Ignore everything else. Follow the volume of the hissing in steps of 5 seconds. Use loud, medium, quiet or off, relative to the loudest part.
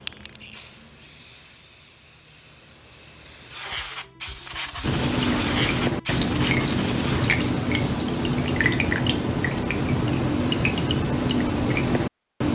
medium, loud, off.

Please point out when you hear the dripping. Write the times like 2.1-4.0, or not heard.
4.8-12.4.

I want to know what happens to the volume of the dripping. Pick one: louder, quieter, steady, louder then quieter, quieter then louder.
steady.